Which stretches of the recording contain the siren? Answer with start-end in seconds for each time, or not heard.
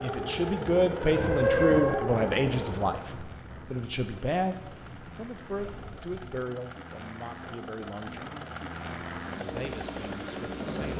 0.0-2.9.